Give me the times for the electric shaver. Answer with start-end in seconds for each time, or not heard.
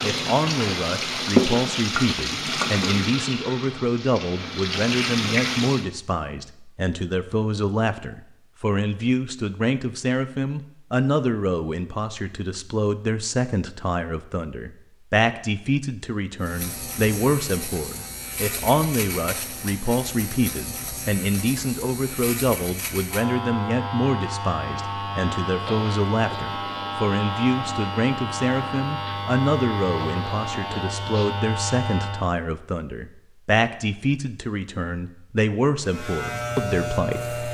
16.4-32.3, 35.8-37.5.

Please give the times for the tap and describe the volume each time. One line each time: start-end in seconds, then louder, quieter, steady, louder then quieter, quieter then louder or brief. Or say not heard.
0.0-5.8 quieter then louder.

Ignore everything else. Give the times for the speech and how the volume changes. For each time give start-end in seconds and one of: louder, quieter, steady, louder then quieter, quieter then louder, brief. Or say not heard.
0.0-37.4 steady.